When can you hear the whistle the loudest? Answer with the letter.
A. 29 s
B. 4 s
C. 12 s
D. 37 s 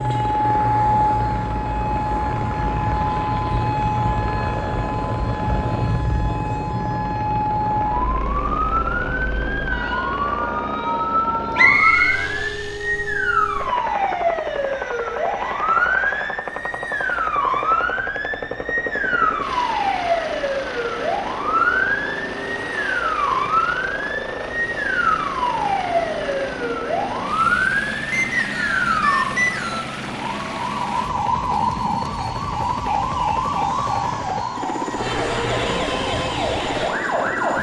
C.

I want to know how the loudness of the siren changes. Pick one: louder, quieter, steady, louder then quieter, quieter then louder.
steady.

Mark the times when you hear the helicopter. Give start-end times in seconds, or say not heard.
0.0-37.5.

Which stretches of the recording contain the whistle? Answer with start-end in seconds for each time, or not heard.
11.6-12.2, 28.1-29.9.